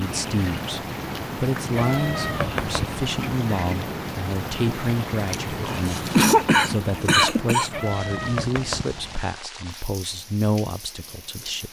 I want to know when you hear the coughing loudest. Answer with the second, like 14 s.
6 s.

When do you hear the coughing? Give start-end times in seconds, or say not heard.
5.3-7.7.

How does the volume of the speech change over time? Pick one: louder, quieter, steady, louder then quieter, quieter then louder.
steady.